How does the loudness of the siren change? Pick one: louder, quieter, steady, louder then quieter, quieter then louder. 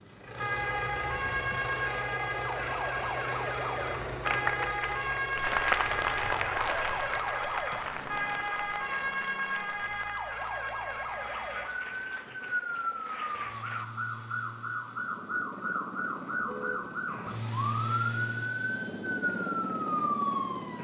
steady.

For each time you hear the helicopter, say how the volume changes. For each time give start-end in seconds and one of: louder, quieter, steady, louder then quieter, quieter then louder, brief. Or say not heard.
0.1-20.7 quieter then louder.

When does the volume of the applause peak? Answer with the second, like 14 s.
6 s.